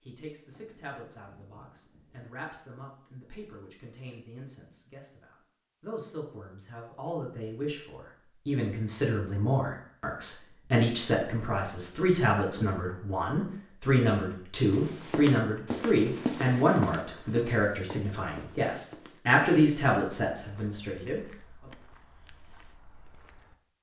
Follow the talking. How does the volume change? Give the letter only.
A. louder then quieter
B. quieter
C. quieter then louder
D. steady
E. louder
E.